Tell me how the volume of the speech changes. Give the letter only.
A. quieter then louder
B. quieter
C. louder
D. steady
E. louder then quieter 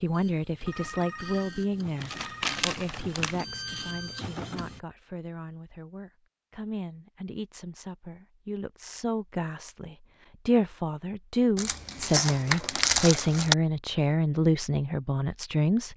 A.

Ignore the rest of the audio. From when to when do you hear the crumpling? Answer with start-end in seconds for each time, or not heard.
2.0-3.5, 11.6-13.6.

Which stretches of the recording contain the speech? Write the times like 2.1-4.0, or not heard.
0.0-15.9.